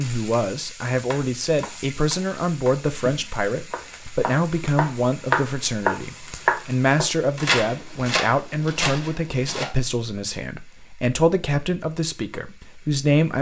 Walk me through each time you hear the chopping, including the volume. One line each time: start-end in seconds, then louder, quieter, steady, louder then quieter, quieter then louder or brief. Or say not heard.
0.9-9.7 louder then quieter.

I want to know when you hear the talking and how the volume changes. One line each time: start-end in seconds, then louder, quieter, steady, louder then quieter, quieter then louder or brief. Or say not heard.
0.0-13.3 steady.